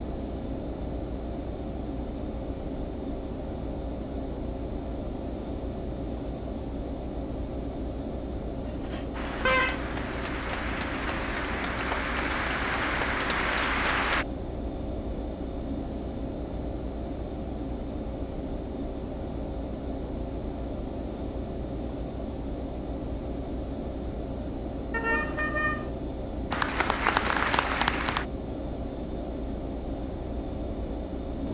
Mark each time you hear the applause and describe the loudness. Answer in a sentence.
You can hear the applause from 9.1 to 14.2 s, getting louder; and briefly from 26.5 to 28.2 s.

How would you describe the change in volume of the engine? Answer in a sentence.
The volume of the engine stays about the same.